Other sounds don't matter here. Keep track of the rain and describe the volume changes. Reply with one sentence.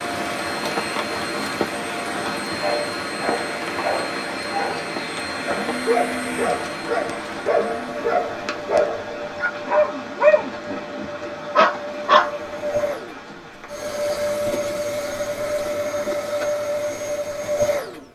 The volume of the rain goes down.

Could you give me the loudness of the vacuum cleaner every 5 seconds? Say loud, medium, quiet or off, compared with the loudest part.
medium, medium, loud, loud.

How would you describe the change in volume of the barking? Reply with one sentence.
The loudness of the barking goes up.